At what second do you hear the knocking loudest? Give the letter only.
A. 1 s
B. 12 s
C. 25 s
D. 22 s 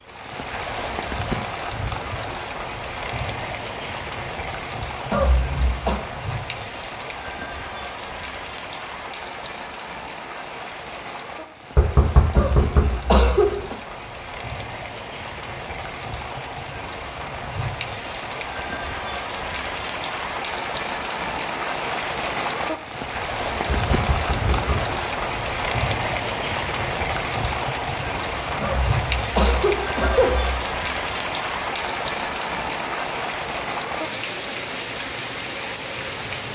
B.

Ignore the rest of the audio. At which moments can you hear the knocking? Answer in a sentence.
The knocking can be heard from 11.8 to 13.0 s and from 23.6 to 24.9 s.